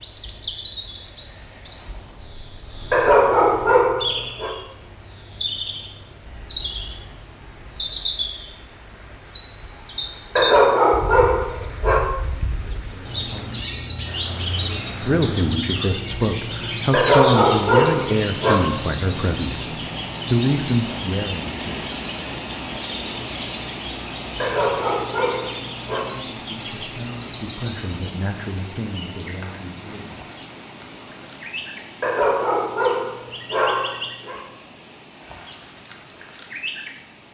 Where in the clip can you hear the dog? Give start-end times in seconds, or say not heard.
2.9-4.5, 10.3-12.0, 16.9-18.6, 24.4-26.1, 32.0-34.4.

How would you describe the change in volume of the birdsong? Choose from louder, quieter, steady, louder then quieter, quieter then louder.
quieter.